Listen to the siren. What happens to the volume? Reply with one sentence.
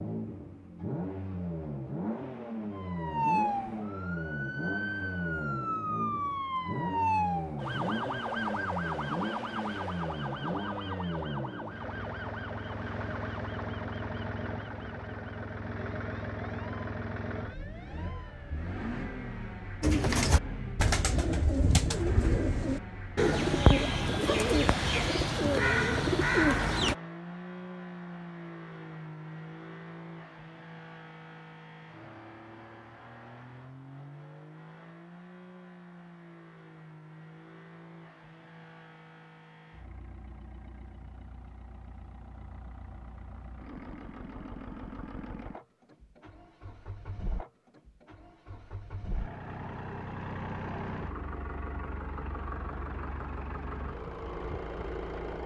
The volume of the siren goes down.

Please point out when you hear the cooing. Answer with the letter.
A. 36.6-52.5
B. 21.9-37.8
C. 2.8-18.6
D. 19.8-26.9
D.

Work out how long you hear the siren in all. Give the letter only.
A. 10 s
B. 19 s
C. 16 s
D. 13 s
C.